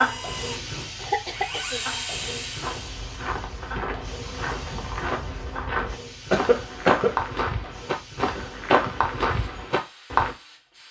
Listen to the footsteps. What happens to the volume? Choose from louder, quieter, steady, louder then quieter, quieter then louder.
louder.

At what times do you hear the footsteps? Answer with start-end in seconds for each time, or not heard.
2.6-10.3.